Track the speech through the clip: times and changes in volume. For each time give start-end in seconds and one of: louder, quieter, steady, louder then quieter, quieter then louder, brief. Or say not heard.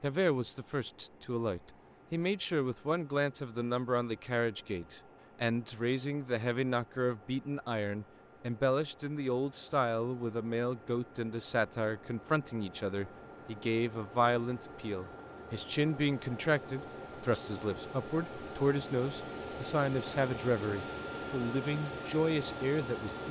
0.0-23.2 steady.